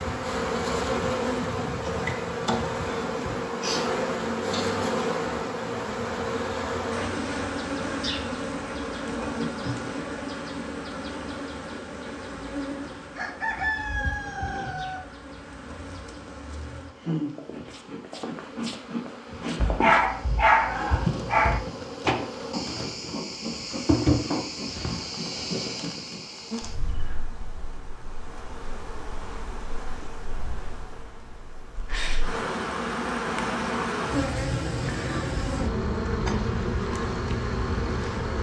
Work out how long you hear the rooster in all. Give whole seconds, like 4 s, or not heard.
2 s.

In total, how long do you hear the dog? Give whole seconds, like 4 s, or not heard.
2 s.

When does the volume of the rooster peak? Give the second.
14 s.